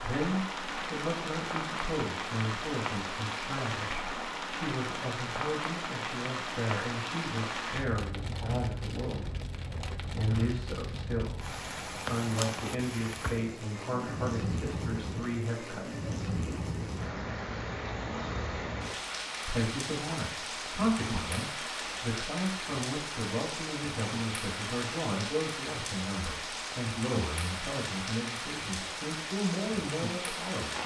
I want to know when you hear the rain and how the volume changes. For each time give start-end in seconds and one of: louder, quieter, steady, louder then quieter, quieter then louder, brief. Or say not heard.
0.0-30.8 steady.